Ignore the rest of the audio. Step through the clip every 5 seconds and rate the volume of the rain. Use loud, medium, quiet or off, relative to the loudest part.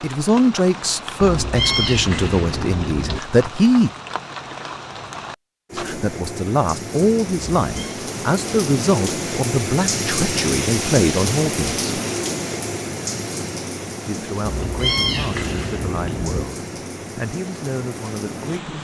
medium, loud, loud, medium.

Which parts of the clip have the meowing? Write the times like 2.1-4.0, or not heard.
1.2-3.2, 7.6-8.0, 14.4-16.4.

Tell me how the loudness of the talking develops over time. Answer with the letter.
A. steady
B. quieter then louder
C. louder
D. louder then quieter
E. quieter
E.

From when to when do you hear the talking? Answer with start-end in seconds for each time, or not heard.
0.0-3.9, 5.8-11.8, 14.1-18.7.